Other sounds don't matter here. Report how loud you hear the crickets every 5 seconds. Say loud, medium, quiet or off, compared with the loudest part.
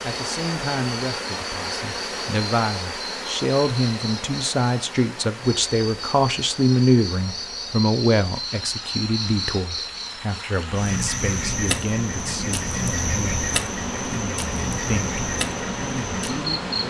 medium, loud, loud, loud.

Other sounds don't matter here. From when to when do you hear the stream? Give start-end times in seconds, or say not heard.
0.0-16.8.